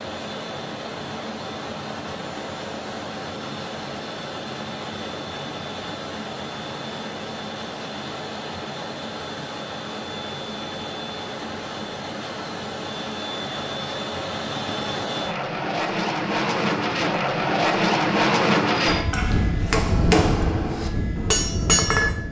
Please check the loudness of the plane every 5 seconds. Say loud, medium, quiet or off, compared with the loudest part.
medium, medium, medium, loud, medium.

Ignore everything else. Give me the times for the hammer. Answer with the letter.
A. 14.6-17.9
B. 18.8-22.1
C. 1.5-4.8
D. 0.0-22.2
B.